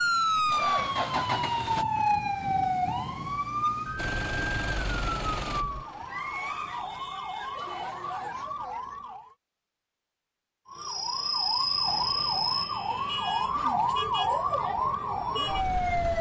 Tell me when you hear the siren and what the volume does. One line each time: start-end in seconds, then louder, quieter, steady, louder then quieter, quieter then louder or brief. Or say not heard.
0.0-9.3 quieter
10.7-16.1 steady.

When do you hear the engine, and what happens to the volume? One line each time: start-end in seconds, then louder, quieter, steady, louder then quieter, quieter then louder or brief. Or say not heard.
0.0-1.9 brief
4.0-8.5 quieter then louder.